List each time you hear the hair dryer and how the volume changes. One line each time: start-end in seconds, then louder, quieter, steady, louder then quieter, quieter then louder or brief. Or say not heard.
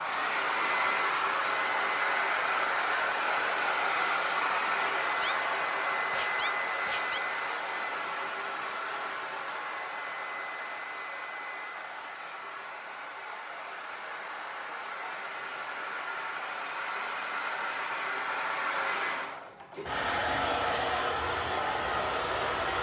0.0-22.7 quieter then louder.